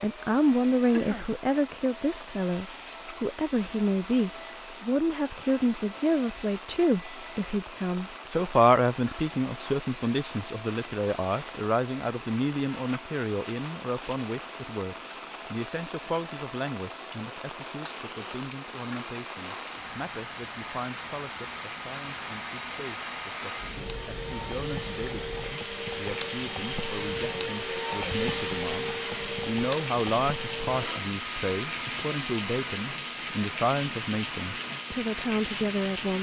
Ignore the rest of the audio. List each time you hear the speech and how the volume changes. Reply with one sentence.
The speech can be heard from 0.0 to 36.1 s, getting quieter then louder.